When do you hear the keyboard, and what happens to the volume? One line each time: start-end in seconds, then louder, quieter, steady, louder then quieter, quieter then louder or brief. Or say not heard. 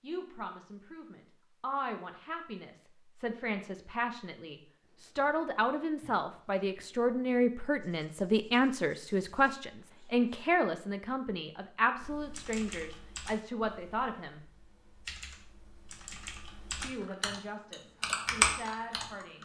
11.9-19.3 quieter then louder.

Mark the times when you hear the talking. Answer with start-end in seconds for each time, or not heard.
0.0-14.4, 16.8-19.3.